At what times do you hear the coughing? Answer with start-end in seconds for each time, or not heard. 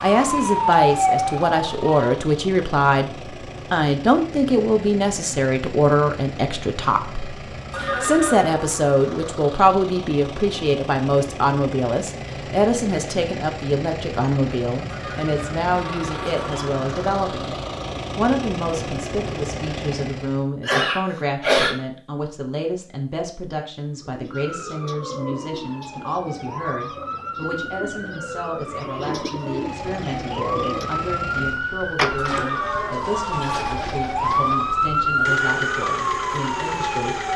20.6-21.8.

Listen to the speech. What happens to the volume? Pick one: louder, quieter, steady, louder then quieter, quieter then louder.
quieter.